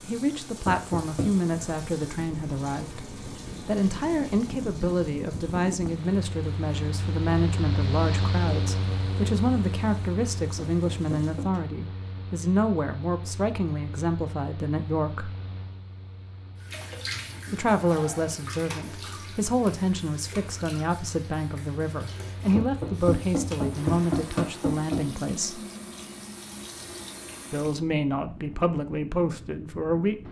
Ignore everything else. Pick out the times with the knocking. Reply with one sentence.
The knocking can be heard from 0.7 to 1.5 s, from 10.7 to 11.6 s and from 22.6 to 25.1 s.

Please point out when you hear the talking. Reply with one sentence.
The talking can be heard from 0.0 to 15.3 s, from 17.5 to 25.6 s and from 27.5 to 30.2 s.